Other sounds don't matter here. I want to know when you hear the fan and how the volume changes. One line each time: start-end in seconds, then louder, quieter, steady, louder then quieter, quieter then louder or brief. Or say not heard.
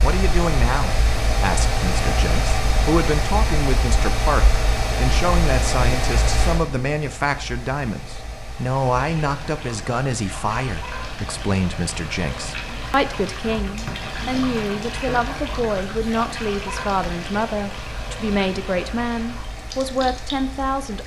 0.0-21.0 quieter.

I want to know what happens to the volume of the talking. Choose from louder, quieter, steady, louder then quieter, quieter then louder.
steady.